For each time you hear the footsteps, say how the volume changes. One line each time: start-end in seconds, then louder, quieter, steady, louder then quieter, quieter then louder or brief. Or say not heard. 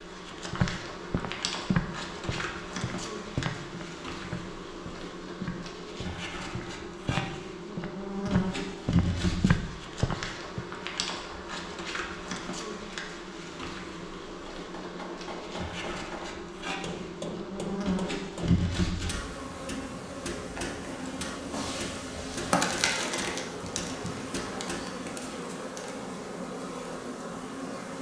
0.5-10.6 quieter then louder.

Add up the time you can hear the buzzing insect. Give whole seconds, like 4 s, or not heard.
28 s.